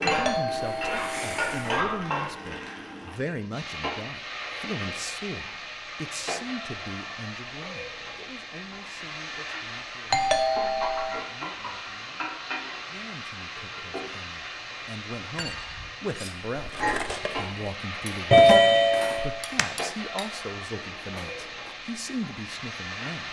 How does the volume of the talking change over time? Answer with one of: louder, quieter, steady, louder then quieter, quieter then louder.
quieter then louder.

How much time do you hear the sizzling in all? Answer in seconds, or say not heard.
23 s.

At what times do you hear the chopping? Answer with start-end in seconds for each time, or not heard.
not heard.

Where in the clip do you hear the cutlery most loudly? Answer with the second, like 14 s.
17 s.